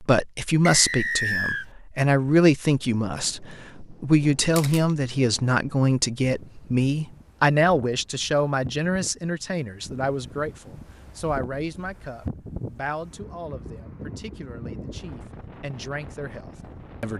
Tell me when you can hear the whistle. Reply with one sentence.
The whistle can be heard from 0.7 to 1.6 s.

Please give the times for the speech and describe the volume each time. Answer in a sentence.
You can hear the speech from 0.0 to 17.1 s, getting quieter.